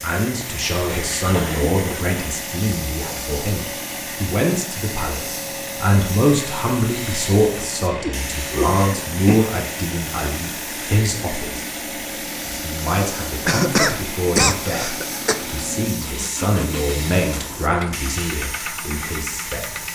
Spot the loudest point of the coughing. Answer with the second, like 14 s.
14 s.